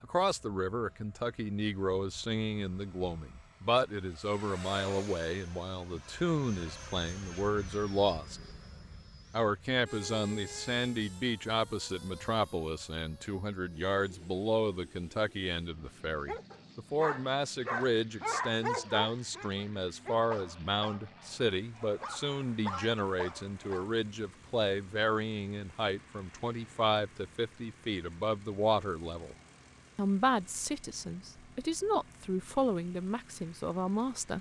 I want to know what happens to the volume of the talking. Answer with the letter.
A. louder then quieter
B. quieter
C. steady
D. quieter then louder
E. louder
C.